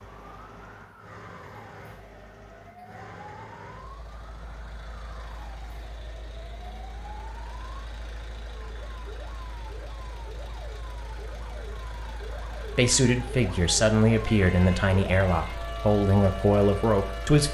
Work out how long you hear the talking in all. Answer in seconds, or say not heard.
5 s.